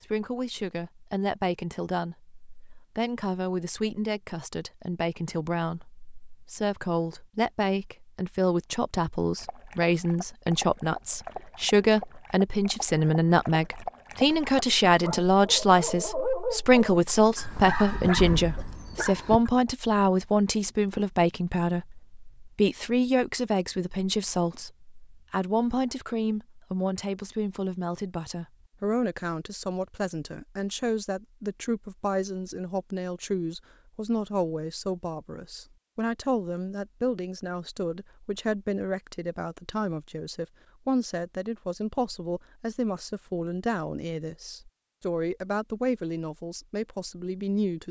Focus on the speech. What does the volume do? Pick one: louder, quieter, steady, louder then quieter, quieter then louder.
louder then quieter.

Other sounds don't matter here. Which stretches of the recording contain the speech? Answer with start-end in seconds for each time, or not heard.
0.0-47.8.